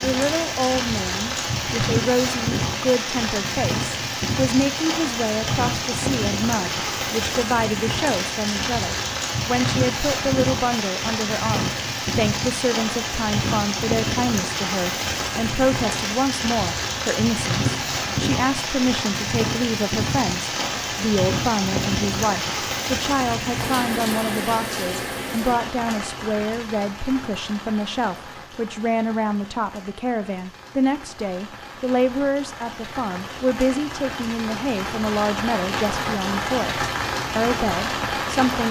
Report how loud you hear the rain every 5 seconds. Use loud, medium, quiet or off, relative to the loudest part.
loud, loud, loud, loud, loud, medium, medium, loud.